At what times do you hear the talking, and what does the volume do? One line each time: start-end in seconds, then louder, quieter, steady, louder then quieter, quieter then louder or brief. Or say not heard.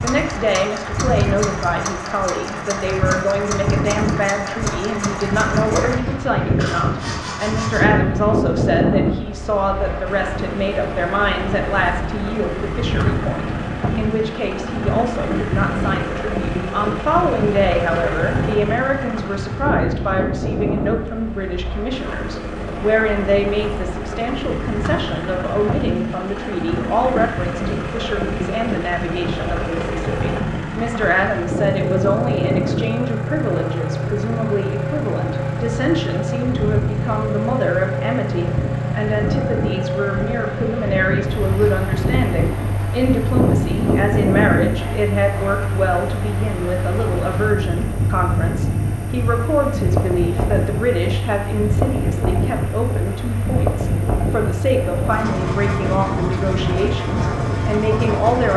0.0-58.5 steady.